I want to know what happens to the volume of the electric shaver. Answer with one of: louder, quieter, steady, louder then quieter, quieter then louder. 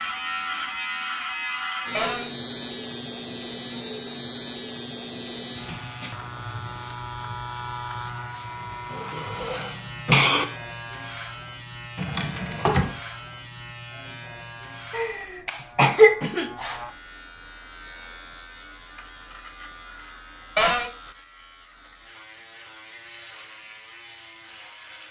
quieter.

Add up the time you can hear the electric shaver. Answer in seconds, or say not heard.
25 s.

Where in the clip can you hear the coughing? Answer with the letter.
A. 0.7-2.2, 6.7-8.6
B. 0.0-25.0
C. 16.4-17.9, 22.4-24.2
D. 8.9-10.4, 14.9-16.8
D.